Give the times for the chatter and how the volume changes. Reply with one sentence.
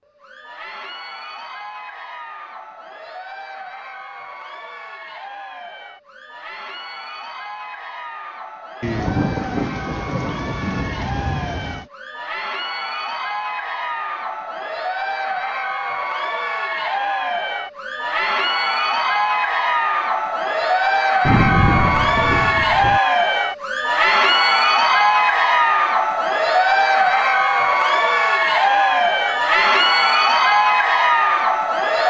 The chatter can be heard from 0.1 to 32.0 s, getting louder.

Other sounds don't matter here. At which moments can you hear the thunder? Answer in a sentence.
You can hear the thunder from 8.8 to 11.8 s and from 21.2 to 23.0 s.